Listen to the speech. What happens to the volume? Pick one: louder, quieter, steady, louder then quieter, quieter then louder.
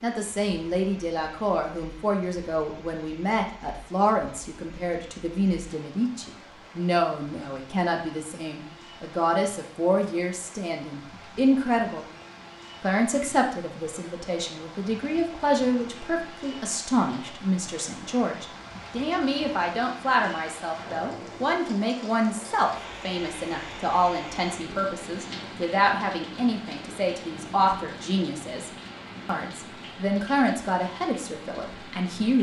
steady.